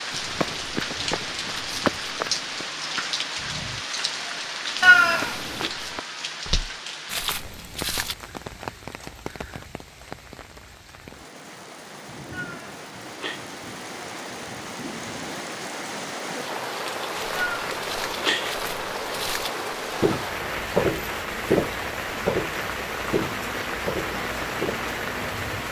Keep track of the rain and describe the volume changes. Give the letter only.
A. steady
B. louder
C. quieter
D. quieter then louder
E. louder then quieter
D.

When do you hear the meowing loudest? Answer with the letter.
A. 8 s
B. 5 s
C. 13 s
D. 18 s
B.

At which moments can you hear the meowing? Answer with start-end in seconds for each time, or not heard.
4.8-5.7, 12.3-13.4, 17.4-18.5.